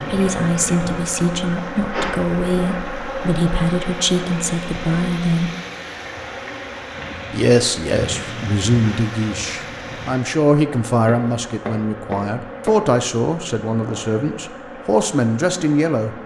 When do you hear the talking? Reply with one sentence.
You can hear the talking from 0.1 to 5.5 s and from 7.3 to 16.1 s.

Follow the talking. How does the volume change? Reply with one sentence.
The volume of the talking stays about the same.